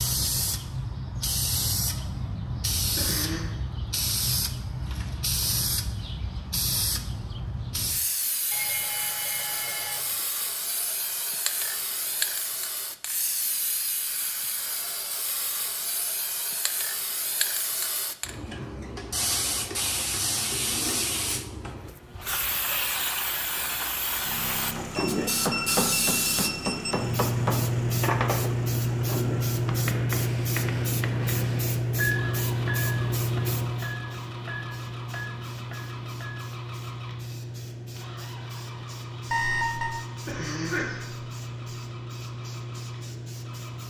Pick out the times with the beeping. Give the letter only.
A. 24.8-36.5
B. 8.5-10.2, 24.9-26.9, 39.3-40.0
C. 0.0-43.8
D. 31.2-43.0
B.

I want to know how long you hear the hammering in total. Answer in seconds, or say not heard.
12 s.